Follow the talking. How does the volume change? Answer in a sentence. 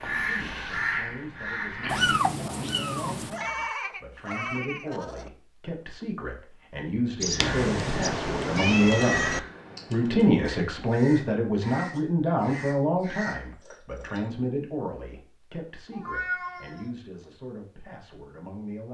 The volume of the talking goes up, then down.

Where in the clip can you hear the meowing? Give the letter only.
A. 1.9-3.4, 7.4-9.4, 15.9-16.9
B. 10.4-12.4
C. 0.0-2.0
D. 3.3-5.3
A.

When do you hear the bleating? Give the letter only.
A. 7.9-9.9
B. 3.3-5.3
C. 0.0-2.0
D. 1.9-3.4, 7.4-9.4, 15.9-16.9
B.